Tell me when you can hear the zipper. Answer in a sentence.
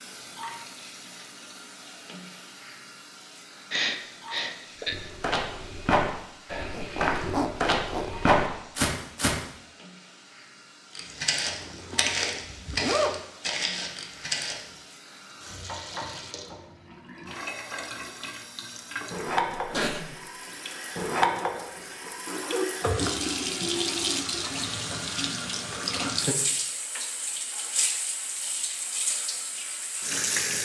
You can hear the zipper from 6.7 to 8.3 s, from 11.4 to 13.2 s and from 21.2 to 23.4 s.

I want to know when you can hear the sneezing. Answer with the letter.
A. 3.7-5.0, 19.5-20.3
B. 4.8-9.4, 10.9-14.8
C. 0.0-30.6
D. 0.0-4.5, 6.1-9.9
A.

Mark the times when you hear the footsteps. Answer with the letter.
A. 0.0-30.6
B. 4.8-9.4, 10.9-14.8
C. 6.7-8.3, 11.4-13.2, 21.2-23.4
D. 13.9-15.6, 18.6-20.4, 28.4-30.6
B.